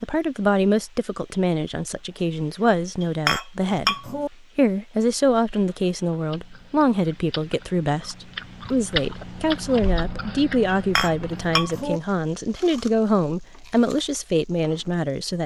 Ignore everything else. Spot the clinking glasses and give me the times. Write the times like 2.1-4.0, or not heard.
3.0-4.3, 10.7-12.0.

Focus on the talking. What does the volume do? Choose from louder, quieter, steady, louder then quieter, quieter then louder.
steady.